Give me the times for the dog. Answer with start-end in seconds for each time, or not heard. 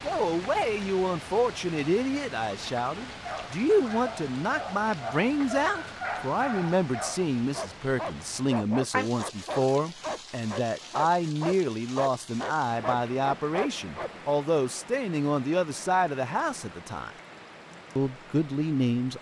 3.0-14.1.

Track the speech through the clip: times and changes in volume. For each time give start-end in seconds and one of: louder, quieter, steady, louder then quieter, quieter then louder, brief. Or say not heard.
0.0-17.1 steady
17.9-19.1 brief.